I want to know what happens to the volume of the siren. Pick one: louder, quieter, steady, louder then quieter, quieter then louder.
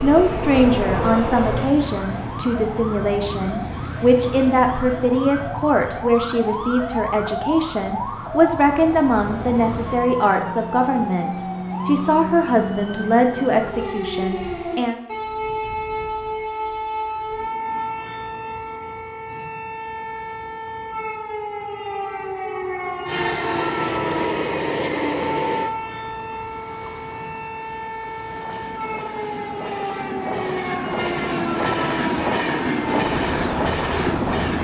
steady.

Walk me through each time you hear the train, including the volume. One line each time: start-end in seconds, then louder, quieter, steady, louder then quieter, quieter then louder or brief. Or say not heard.
0.0-1.7 brief
23.1-34.6 quieter then louder.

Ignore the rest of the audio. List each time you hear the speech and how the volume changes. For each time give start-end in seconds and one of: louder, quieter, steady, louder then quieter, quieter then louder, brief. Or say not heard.
0.0-15.0 steady.